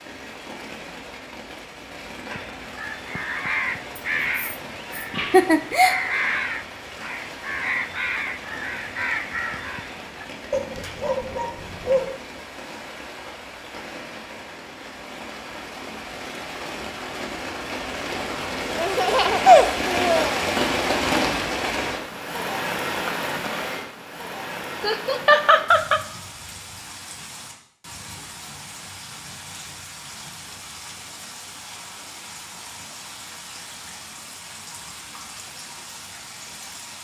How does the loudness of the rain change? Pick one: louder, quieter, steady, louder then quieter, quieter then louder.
louder then quieter.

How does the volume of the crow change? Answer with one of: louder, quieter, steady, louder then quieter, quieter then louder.
steady.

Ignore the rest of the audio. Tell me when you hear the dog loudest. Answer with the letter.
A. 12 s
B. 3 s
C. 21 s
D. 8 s
A.